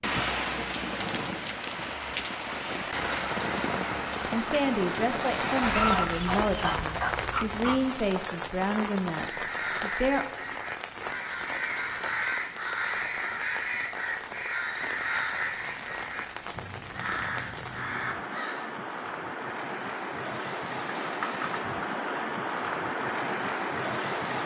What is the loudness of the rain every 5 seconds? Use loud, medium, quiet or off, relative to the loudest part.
loud, loud, medium, medium, loud.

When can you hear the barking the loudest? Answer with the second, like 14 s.
6 s.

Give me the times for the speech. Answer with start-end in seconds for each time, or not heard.
4.3-10.2.